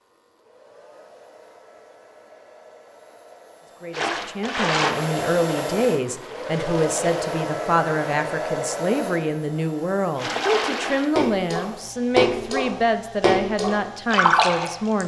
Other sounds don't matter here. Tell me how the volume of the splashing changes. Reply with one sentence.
The volume of the splashing goes down, then up.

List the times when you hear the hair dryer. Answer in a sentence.
You can hear the hair dryer from 0.0 to 15.0 s.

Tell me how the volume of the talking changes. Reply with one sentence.
The loudness of the talking stays about the same.